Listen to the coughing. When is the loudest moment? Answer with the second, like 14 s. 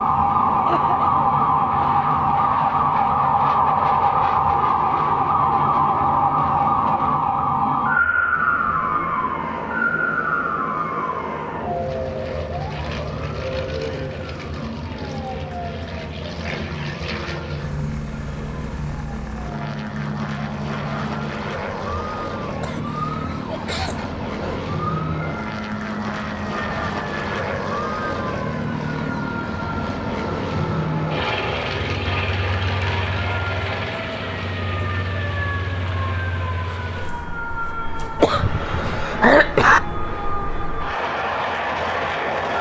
39 s.